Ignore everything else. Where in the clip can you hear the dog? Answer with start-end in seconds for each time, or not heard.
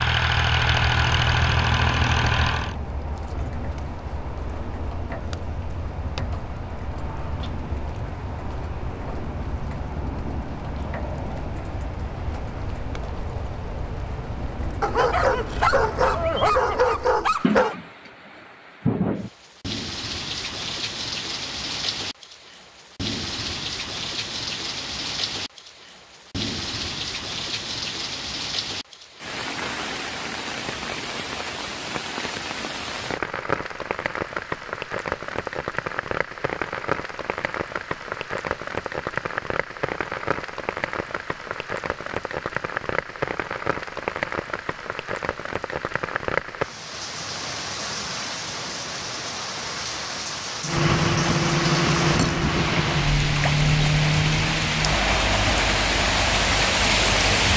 14.8-17.8.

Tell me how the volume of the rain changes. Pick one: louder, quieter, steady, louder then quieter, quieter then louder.
louder.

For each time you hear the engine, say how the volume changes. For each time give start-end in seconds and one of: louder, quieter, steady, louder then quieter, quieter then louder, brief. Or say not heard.
0.0-2.8 brief
50.6-57.5 quieter.